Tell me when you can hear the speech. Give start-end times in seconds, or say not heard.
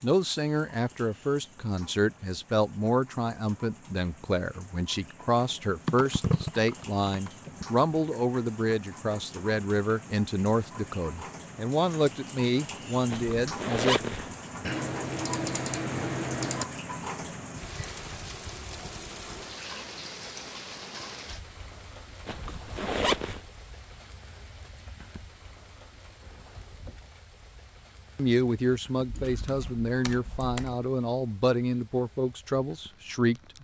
0.0-14.2, 28.1-33.5.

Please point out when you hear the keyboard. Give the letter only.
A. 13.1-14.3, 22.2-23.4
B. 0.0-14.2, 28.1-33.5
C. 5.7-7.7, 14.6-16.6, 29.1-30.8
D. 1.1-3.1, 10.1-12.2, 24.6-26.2
C.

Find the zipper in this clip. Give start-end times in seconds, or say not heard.
13.1-14.3, 22.2-23.4.